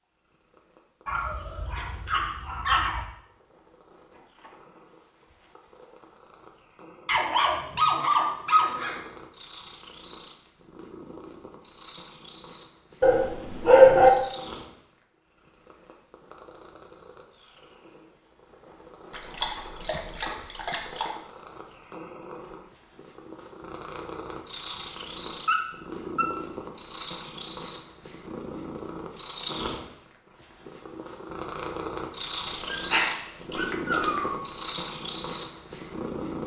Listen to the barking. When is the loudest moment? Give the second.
14 s.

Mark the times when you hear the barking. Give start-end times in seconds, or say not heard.
1.1-3.0, 7.0-9.0, 13.0-14.1, 19.1-21.1, 24.8-26.6, 32.7-34.4.